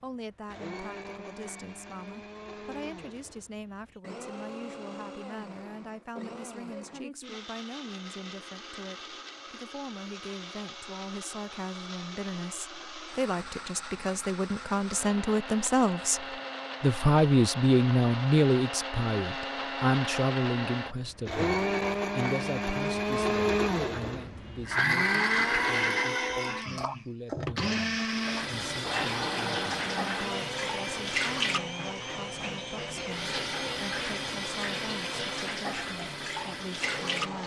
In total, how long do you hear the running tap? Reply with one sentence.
The running tap can be heard for 9 seconds in total.